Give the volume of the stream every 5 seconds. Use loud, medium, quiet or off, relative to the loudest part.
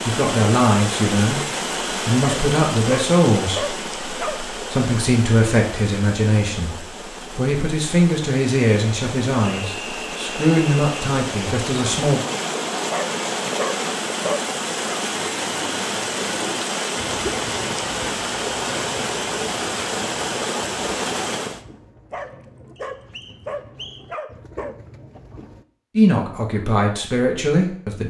loud, medium, loud, loud, loud, off.